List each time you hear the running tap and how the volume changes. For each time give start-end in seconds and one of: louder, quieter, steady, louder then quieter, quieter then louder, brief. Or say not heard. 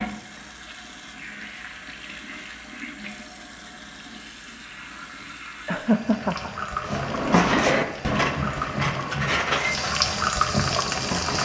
0.0-11.3 louder.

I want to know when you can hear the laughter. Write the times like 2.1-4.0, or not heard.
5.7-6.5.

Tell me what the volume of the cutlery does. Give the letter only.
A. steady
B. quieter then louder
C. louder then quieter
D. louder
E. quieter
E.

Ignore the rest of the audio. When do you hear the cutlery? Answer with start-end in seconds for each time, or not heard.
6.8-11.3.